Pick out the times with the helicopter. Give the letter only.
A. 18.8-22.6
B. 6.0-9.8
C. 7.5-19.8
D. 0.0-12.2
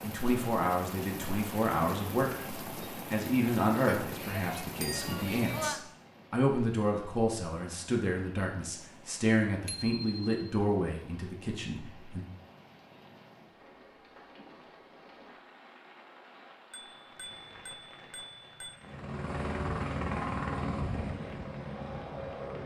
A.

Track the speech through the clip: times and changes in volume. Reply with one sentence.
The speech can be heard from 0.0 to 12.2 s, at a steady volume.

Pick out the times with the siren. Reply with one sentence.
The siren can't be heard in this clip.